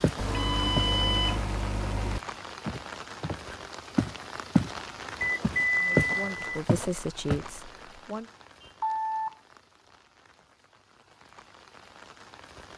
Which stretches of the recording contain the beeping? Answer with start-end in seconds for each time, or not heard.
0.1-2.2, 5.2-6.7, 8.6-9.3.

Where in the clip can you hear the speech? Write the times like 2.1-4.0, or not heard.
5.8-8.2.